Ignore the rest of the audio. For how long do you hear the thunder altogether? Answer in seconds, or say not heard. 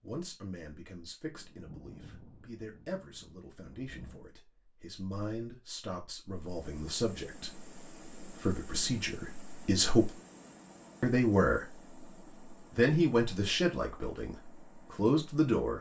3 s.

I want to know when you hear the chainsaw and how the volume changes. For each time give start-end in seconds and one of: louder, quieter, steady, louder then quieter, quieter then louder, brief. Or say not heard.
not heard.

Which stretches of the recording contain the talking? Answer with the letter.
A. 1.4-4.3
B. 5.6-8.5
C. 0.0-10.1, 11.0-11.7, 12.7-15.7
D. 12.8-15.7
C.